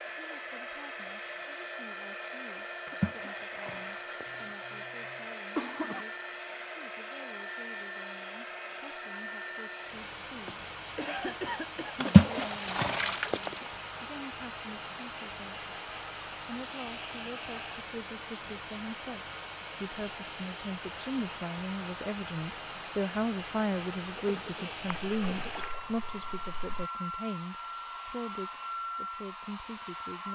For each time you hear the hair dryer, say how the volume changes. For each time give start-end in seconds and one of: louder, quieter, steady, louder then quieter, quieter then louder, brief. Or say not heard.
0.0-30.3 steady.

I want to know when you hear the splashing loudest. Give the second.
12 s.